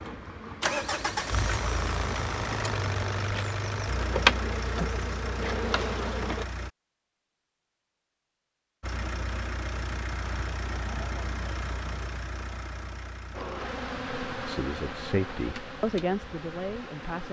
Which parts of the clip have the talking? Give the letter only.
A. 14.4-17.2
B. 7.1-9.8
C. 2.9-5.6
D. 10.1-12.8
A.